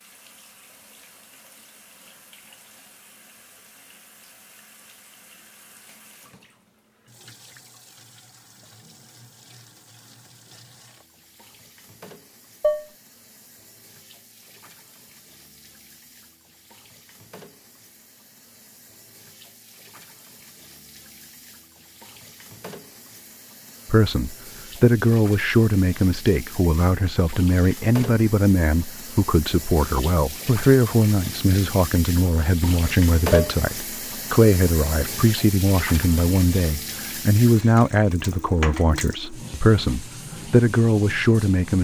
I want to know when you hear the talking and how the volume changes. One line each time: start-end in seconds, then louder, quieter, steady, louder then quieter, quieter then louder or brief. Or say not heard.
23.9-41.7 steady.